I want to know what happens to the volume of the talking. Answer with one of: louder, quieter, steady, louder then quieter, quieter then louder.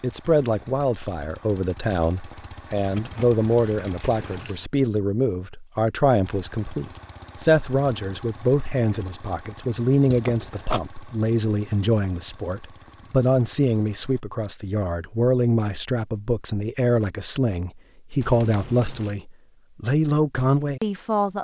steady.